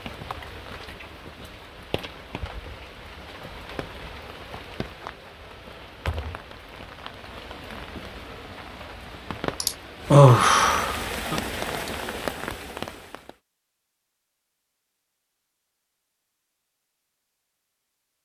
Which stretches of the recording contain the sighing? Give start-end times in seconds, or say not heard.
9.6-11.4.